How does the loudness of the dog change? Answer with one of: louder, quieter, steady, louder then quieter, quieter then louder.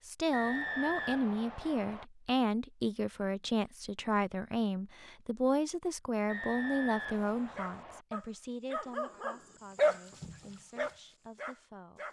louder then quieter.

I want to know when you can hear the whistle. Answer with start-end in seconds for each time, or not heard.
0.3-2.0, 6.2-8.1.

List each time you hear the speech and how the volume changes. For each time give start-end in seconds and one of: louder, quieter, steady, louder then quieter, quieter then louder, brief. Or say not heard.
0.1-12.0 quieter.